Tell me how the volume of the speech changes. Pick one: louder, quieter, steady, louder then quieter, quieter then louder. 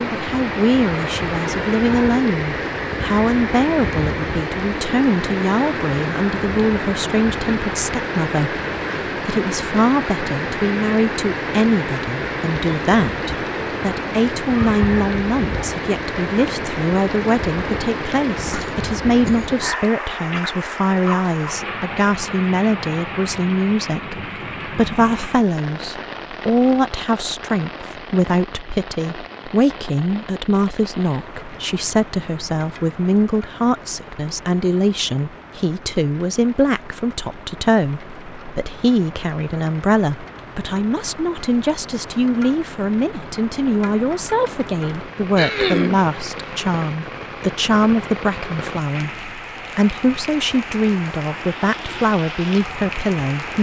steady.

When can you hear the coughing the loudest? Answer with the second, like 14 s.
46 s.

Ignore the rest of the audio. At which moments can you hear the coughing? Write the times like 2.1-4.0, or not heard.
18.4-19.5, 45.4-46.0.